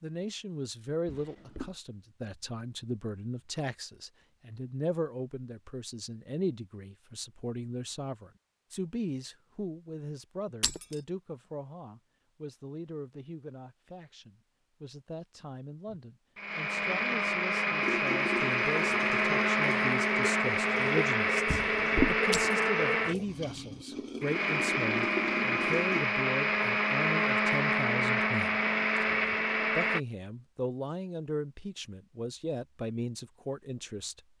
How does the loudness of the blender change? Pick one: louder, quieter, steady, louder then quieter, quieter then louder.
steady.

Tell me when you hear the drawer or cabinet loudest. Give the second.
22 s.